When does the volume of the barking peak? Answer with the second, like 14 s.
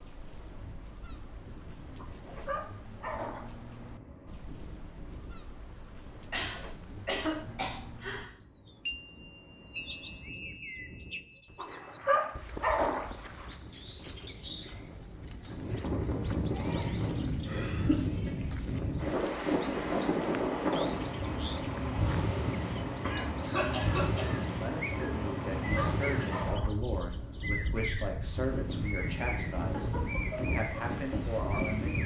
13 s.